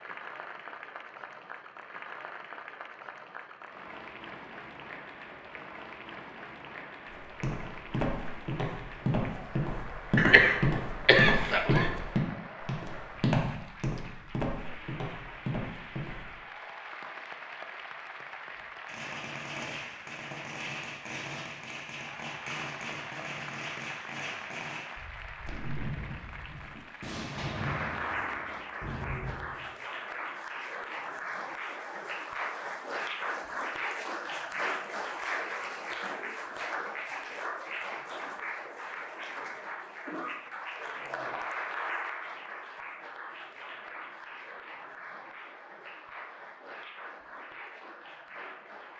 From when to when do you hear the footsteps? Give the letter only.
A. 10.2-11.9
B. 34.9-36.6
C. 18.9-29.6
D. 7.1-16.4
D.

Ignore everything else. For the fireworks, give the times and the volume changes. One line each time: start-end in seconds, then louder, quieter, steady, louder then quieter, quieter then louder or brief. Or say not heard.
18.9-29.6 steady.